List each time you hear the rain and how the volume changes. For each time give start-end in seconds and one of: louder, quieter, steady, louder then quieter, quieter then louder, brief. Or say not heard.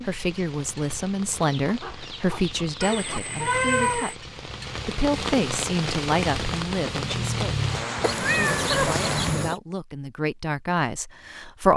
0.0-9.5 louder.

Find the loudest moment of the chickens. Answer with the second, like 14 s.
9 s.